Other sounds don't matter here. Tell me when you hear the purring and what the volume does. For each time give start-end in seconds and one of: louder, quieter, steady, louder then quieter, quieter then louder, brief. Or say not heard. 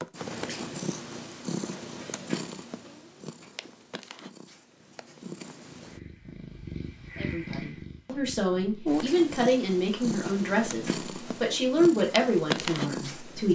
0.0-13.5 quieter then louder.